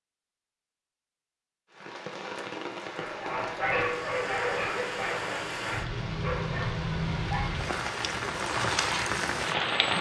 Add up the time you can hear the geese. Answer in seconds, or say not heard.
not heard.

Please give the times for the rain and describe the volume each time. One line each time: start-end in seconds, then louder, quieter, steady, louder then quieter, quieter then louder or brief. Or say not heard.
1.7-9.9 louder.